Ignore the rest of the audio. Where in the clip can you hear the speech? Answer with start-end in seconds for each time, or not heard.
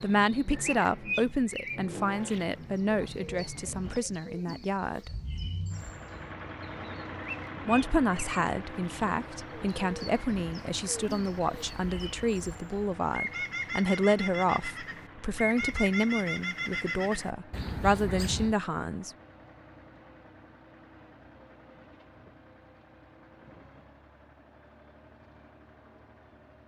0.0-5.1, 7.7-19.1.